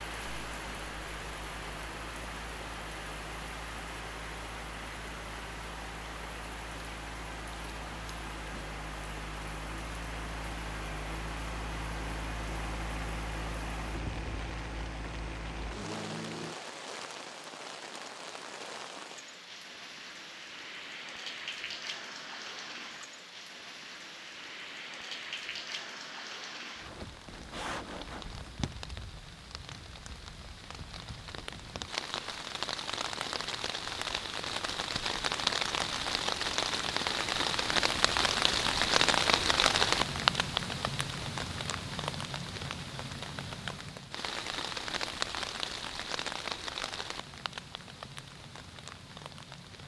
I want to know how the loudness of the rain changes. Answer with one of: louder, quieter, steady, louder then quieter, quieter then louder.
louder.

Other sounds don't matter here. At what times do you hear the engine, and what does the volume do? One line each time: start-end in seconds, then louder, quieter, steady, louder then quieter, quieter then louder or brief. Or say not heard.
0.0-16.6 louder.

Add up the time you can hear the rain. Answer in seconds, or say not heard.
50 s.